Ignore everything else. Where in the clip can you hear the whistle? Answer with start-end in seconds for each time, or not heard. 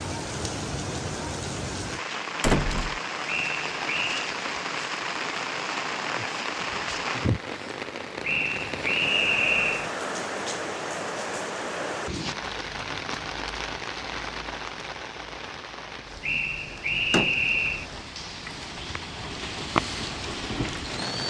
3.2-4.3, 8.2-9.9, 16.2-17.9.